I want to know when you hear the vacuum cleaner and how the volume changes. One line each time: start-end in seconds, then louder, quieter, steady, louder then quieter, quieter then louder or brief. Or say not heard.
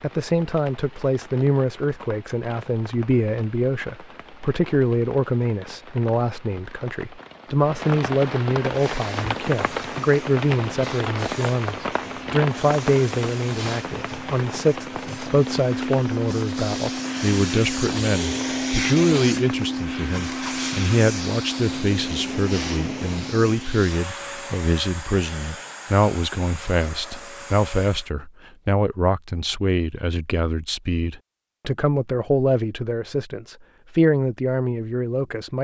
8.6-28.1 louder then quieter.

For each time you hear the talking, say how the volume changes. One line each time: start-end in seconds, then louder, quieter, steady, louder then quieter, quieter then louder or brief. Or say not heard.
0.0-35.5 steady.